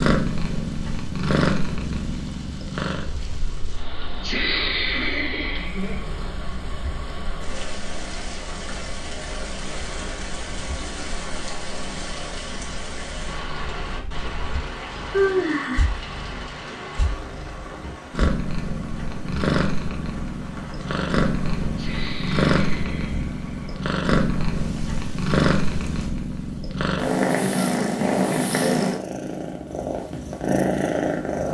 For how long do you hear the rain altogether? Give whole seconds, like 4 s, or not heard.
26 s.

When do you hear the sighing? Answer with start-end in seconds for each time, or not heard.
4.2-6.0, 15.1-15.9, 21.8-23.8.